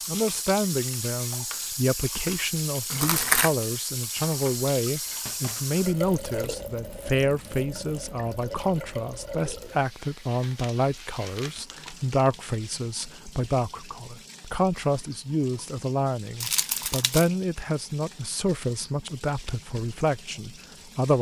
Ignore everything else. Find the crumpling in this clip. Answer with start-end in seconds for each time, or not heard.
2.9-3.5, 10.4-12.3, 16.4-17.3.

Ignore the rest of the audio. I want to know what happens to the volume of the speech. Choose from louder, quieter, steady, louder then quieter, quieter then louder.
steady.